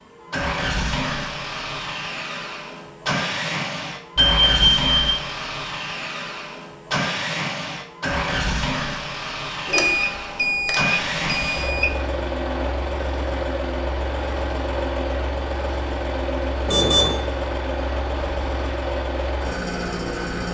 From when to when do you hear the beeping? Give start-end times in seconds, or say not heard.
4.2-5.2, 9.7-11.8, 16.6-17.1.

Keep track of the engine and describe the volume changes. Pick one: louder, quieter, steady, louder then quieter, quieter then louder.
steady.